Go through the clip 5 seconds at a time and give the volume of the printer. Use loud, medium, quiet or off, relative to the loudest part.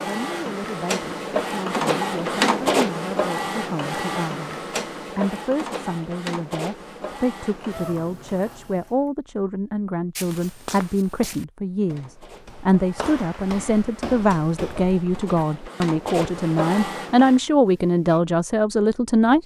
loud, medium, quiet, medium.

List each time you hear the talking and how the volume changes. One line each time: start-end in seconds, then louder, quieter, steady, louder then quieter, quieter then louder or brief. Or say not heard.
0.0-19.4 louder.